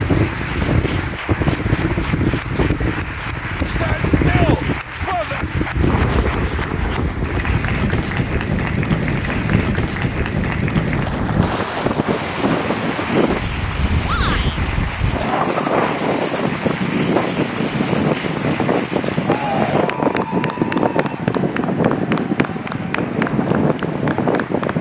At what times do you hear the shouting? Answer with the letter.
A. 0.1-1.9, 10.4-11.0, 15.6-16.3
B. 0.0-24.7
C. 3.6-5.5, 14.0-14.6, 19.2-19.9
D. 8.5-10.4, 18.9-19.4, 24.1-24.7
C.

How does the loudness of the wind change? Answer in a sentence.
The loudness of the wind stays about the same.